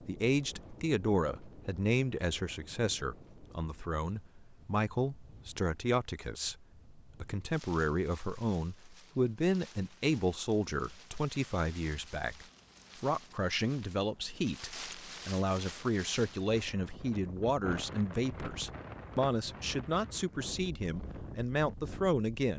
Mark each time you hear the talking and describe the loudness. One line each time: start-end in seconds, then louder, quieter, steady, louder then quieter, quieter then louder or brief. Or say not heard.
0.1-22.5 steady.